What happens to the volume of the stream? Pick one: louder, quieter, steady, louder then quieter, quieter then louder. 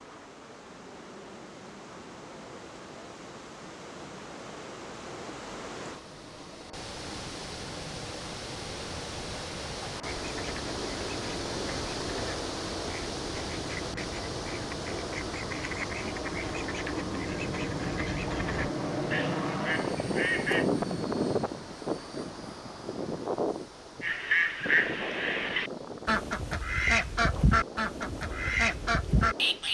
louder then quieter.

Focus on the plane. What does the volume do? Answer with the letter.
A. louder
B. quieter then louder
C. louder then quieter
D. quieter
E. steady
C.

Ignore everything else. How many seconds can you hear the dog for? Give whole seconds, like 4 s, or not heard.
not heard.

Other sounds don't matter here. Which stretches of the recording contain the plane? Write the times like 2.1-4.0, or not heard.
0.0-29.6.